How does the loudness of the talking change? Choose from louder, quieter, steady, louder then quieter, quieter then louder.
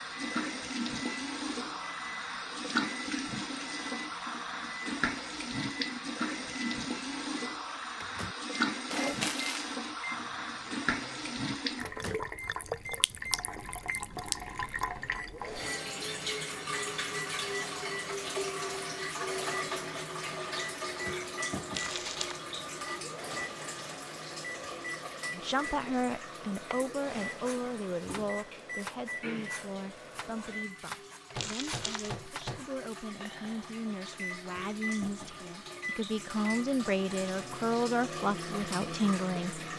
quieter then louder.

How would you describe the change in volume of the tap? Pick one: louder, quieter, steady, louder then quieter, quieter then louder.
quieter.